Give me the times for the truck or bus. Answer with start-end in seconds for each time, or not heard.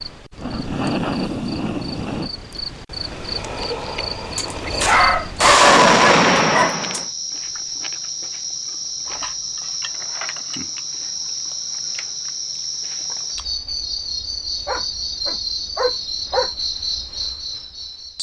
not heard.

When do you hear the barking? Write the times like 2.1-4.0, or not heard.
4.8-6.7, 14.7-16.5.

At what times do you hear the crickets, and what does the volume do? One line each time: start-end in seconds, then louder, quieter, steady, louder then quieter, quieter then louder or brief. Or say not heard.
0.0-18.1 steady.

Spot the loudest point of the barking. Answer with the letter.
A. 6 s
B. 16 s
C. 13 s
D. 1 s
A.